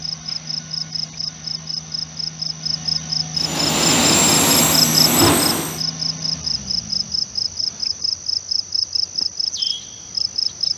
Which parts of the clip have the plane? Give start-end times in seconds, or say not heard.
3.4-5.8.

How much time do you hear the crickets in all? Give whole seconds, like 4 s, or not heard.
11 s.